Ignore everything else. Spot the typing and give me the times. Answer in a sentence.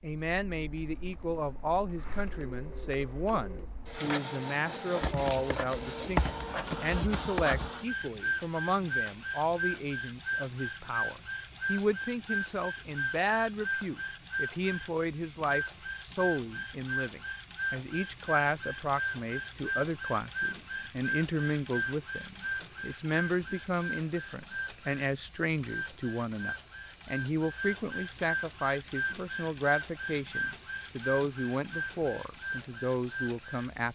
You can hear the typing from 5.0 to 7.7 s.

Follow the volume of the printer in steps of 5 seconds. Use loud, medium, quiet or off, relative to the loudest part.
medium, loud, loud, loud, loud, loud, loud.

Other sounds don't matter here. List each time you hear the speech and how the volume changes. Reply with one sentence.
You can hear the speech from 0.0 to 33.8 s, at a steady volume.